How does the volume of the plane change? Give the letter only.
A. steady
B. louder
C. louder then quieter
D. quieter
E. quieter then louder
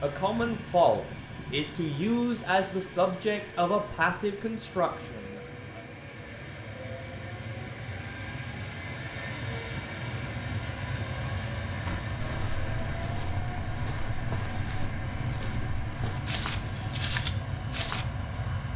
B.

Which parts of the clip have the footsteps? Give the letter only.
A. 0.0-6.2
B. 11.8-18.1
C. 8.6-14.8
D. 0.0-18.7
B.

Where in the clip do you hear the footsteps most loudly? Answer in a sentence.
The volume of the footsteps peaks at 17 seconds.